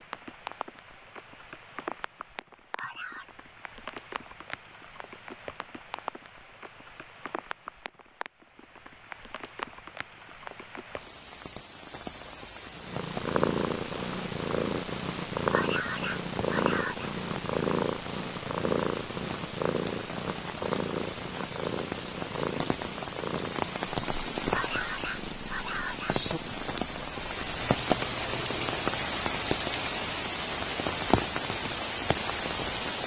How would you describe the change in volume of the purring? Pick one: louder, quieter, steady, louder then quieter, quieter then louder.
quieter.